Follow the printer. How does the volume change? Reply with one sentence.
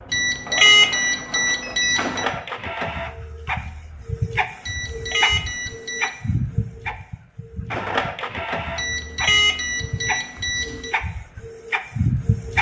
The loudness of the printer stays about the same.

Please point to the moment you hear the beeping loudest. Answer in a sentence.
The volume of the beeping peaks at 1 second.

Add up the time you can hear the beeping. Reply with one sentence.
The beeping can be heard for 6 seconds in total.